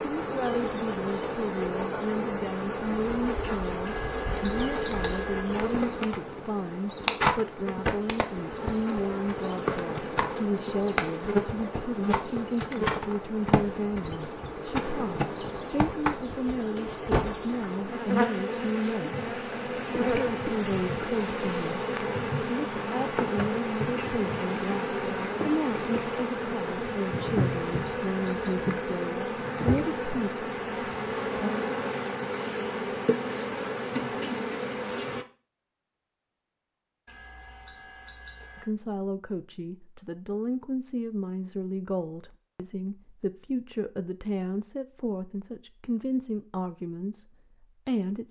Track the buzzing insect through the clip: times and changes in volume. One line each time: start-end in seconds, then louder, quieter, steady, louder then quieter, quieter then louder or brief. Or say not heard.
0.0-35.2 steady.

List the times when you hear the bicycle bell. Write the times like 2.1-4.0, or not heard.
3.9-5.4, 27.2-28.9, 37.0-38.6.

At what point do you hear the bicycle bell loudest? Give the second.
5 s.